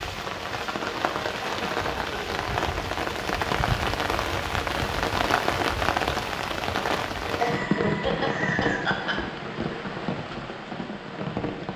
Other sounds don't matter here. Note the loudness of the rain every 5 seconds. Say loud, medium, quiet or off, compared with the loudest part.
loud, loud, medium.